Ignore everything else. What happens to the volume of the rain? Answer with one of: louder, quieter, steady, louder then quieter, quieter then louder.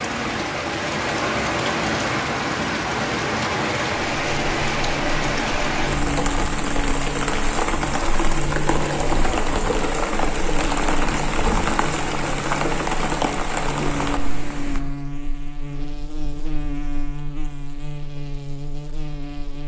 steady.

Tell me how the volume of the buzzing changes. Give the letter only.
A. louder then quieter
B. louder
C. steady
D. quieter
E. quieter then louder
C.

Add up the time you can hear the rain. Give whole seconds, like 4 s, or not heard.
15 s.